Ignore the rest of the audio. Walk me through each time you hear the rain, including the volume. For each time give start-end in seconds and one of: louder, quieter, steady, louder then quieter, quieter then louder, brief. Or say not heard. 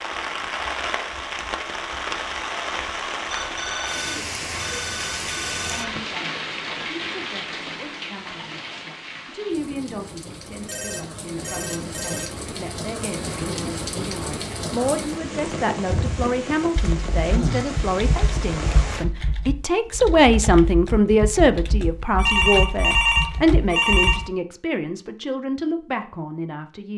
0.0-19.1 quieter then louder.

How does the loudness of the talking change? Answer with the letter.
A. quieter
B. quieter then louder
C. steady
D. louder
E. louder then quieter
E.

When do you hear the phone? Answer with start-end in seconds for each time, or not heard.
3.3-6.0, 10.7-12.3, 22.1-24.2.